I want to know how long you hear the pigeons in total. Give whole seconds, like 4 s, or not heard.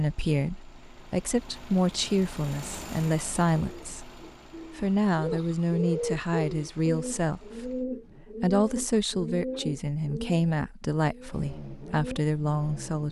9 s.